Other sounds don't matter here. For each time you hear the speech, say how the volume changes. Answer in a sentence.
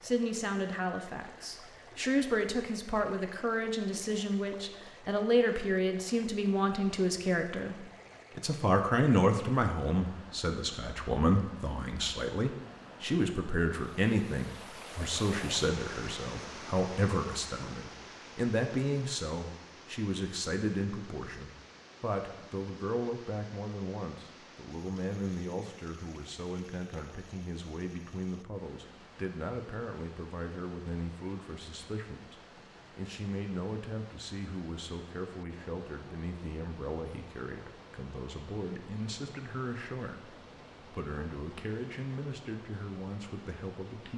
The speech can be heard from 0.0 to 44.1 s, getting quieter.